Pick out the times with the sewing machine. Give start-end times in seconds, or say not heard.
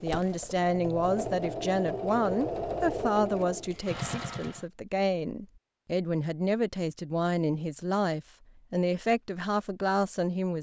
0.0-4.7.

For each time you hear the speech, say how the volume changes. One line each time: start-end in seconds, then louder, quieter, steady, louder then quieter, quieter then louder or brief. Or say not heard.
0.0-10.5 steady.